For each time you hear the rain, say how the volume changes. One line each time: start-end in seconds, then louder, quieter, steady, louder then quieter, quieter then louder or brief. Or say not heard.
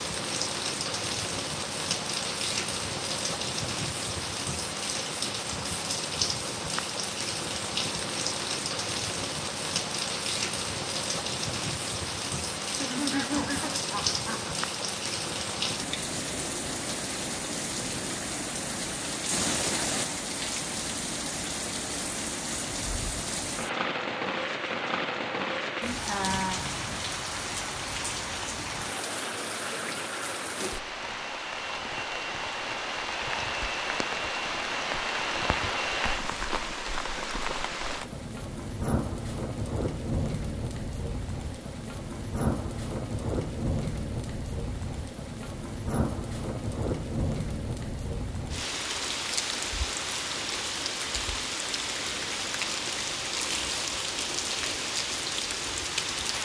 0.0-56.3 steady.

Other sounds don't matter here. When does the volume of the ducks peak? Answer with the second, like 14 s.
13 s.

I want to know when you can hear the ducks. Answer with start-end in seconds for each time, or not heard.
12.8-14.6.